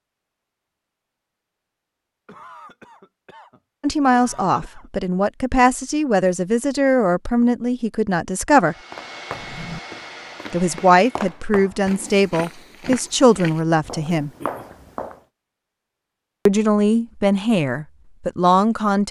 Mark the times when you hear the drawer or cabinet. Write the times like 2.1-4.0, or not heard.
9.3-9.8.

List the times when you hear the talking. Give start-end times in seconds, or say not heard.
3.8-8.8, 10.5-14.3, 16.4-19.0.